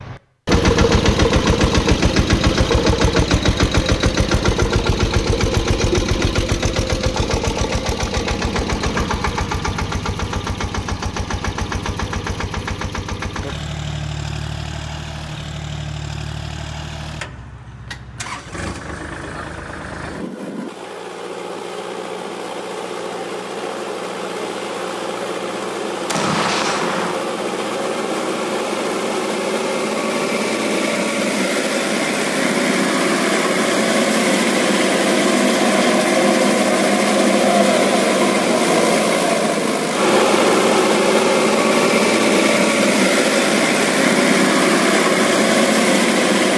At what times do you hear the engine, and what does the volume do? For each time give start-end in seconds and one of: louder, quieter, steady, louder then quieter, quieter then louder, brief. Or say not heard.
0.0-46.5 quieter then louder.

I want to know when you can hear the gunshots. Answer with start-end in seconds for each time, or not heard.
26.1-27.1.